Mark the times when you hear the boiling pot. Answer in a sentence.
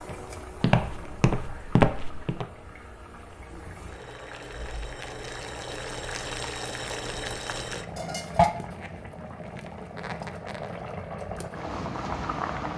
The boiling pot can be heard from 0.0 to 12.7 s.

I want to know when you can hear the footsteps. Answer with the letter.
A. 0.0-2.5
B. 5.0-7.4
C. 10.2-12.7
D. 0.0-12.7
A.